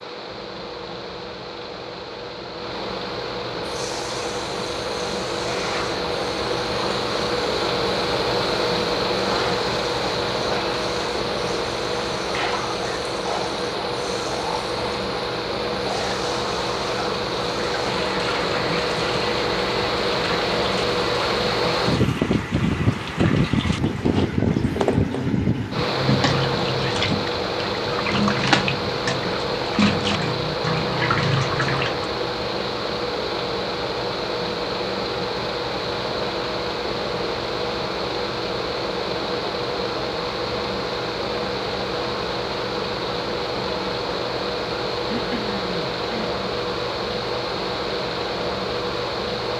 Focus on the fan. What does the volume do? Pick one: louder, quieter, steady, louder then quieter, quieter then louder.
steady.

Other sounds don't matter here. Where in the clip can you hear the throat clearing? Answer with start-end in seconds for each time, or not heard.
45.0-46.3.